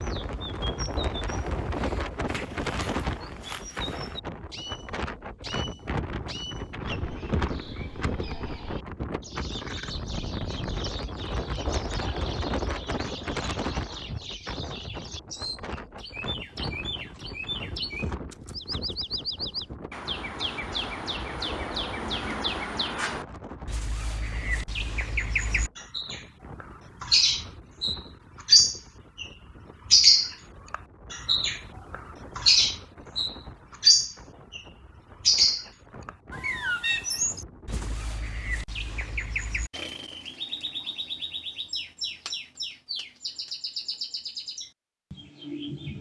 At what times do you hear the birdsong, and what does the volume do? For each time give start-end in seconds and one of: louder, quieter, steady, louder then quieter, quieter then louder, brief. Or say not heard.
0.0-45.9 louder then quieter.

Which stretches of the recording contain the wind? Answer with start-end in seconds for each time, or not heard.
0.0-38.1.